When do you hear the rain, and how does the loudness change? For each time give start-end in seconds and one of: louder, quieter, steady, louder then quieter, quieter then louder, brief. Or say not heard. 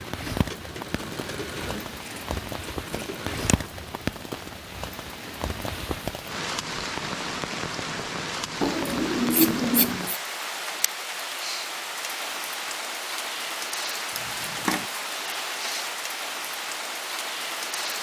0.0-17.9 steady.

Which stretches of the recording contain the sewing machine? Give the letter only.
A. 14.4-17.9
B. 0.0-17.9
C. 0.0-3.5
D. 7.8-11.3
C.